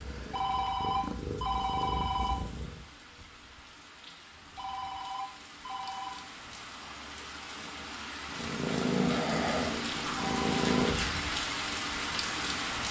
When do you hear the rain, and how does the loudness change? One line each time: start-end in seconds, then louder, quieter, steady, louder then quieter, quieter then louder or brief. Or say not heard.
0.0-12.8 louder.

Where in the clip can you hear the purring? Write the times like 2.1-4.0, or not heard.
0.0-2.9, 8.2-11.2.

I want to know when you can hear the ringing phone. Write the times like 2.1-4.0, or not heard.
0.3-2.4, 4.5-6.2, 10.2-10.8.